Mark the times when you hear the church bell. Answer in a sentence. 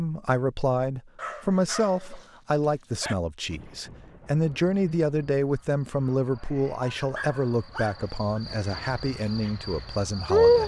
The church bell can't be heard in this clip.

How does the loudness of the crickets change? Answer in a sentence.
The volume of the crickets goes up.